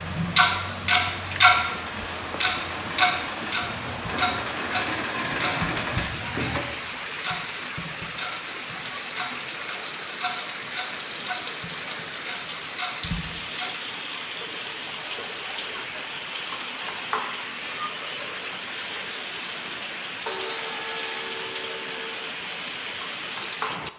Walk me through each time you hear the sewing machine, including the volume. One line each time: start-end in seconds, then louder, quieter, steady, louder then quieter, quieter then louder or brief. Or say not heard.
0.0-6.6 louder.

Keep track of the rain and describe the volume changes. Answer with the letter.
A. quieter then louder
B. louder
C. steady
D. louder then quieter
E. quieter
C.